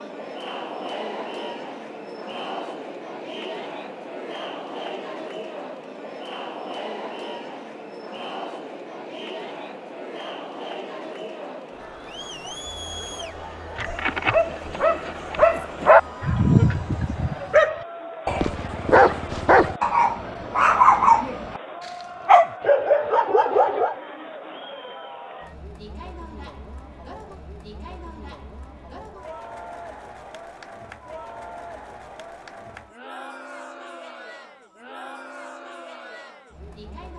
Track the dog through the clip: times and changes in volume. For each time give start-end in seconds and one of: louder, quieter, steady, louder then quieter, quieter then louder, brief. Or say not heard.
13.8-23.9 steady.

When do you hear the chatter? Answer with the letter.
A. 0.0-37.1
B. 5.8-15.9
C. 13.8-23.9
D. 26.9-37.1
A.